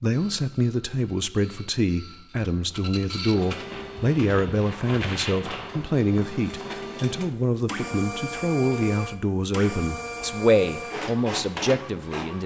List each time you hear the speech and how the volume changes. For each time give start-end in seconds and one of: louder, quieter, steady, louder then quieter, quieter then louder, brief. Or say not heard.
0.0-12.4 steady.